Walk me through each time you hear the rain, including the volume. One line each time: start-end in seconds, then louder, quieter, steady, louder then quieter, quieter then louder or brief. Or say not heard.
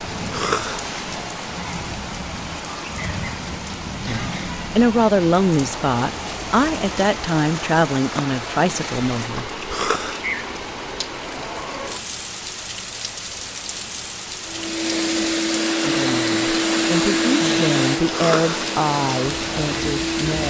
0.0-20.4 steady.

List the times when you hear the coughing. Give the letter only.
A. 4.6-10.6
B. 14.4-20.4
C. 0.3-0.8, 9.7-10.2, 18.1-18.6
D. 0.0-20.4
C.